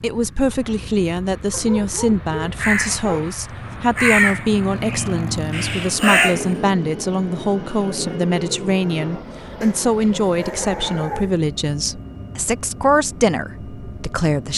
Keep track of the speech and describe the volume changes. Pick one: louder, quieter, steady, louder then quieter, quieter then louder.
steady.